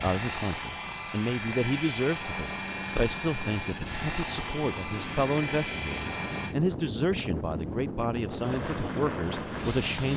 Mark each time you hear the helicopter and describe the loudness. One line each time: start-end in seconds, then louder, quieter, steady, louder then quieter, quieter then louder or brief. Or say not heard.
0.0-6.5 steady
8.3-10.1 brief.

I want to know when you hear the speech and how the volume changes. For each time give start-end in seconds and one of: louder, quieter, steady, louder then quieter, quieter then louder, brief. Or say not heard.
0.0-10.1 steady.